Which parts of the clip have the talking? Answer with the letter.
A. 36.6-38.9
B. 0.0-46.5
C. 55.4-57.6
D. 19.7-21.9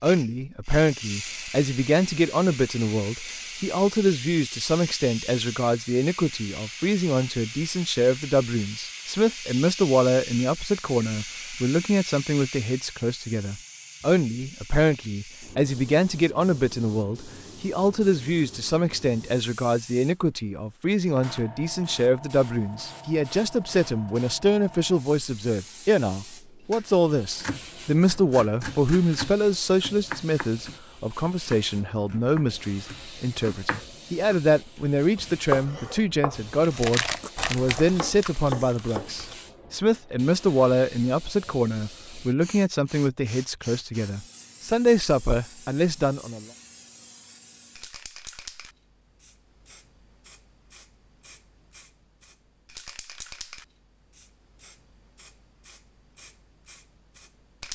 B.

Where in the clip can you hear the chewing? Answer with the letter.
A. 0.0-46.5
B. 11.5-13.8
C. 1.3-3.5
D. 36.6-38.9
D.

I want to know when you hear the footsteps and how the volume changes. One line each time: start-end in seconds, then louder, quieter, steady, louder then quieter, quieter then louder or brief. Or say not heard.
not heard.